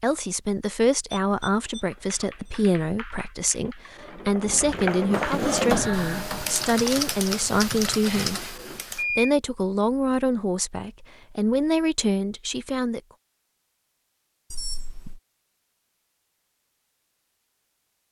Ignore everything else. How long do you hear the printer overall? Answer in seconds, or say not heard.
5 s.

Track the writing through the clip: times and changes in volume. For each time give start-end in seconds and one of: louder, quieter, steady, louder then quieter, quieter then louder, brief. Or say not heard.
not heard.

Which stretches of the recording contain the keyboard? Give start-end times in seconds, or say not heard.
1.9-9.1.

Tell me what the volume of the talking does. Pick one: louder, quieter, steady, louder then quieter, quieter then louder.
steady.